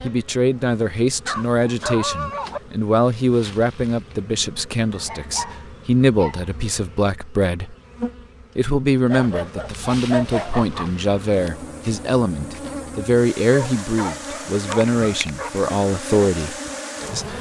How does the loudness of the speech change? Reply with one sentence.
The volume of the speech stays about the same.